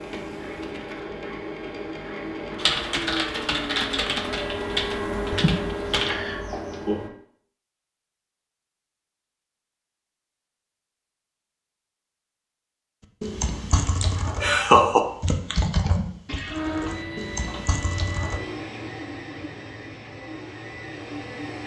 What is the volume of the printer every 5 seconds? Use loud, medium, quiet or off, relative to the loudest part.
loud, loud, off, loud, medium.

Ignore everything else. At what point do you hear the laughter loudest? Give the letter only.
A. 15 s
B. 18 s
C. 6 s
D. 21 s
A.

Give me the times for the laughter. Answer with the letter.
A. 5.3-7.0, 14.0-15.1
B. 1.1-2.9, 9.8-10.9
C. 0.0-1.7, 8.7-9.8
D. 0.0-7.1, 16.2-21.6
A.